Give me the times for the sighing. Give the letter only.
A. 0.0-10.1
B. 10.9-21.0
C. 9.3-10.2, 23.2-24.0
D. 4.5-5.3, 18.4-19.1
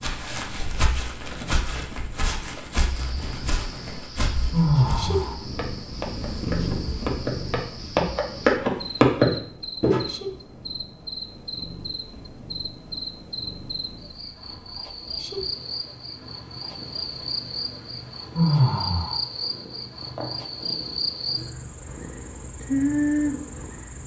D.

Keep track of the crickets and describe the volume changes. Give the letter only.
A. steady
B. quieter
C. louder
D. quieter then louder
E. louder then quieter
C.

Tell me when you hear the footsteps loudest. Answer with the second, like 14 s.
9 s.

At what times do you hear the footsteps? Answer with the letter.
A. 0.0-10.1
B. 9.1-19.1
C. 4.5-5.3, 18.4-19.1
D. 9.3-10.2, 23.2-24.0
A.